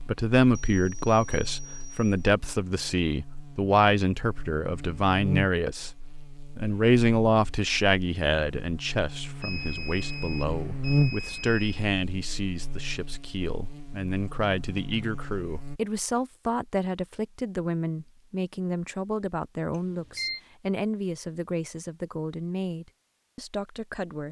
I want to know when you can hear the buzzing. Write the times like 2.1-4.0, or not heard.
0.0-15.8.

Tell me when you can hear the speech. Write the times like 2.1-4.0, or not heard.
0.1-24.2.